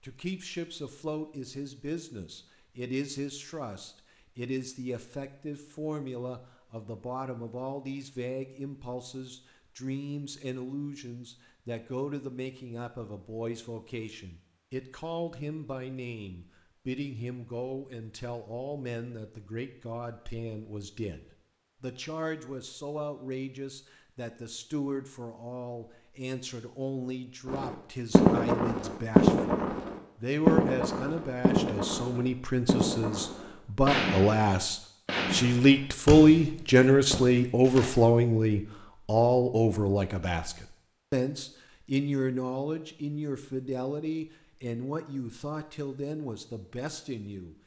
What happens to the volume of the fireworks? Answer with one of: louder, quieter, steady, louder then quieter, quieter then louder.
quieter.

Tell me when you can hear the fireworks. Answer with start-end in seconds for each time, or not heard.
27.4-37.9.